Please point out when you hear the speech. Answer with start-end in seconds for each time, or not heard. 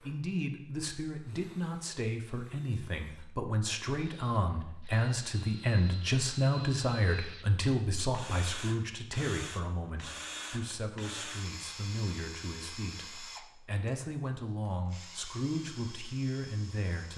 0.0-17.1.